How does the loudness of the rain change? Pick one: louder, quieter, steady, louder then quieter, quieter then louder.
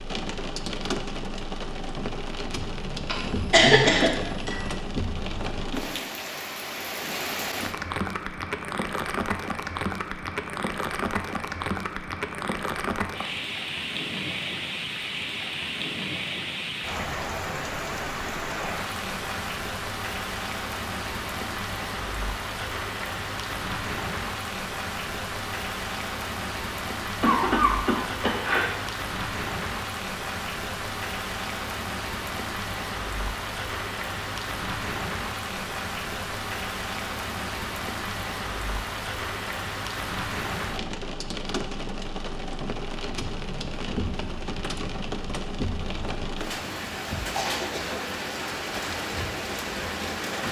steady.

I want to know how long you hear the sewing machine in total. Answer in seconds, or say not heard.
not heard.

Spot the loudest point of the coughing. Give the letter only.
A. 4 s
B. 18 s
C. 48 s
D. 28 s
A.